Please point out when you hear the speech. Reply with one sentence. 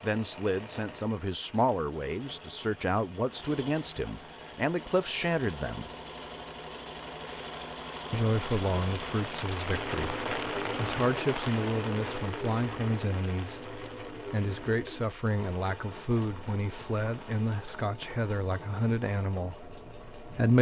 The speech can be heard from 0.0 to 5.9 s and from 8.1 to 20.5 s.